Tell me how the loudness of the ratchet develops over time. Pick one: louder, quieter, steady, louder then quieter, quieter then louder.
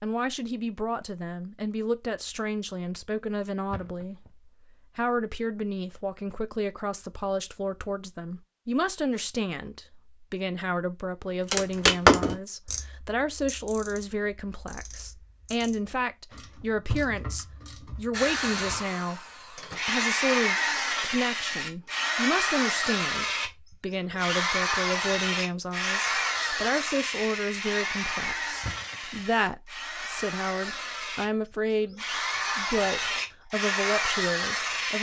quieter then louder.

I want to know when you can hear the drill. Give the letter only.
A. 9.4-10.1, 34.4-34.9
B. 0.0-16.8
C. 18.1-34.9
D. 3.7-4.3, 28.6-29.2
C.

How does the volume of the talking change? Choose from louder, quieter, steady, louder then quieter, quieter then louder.
steady.